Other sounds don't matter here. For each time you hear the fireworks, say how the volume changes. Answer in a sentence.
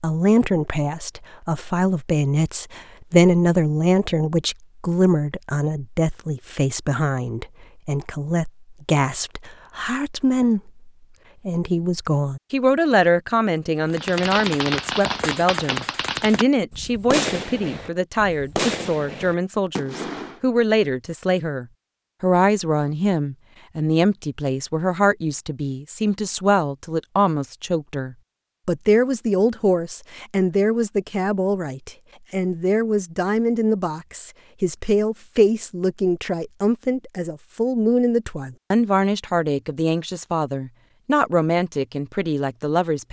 You can hear the fireworks from 13.9 to 20.4 s, getting quieter.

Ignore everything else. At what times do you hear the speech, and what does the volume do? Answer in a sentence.
You can hear the speech from 0.0 to 43.0 s, at a steady volume.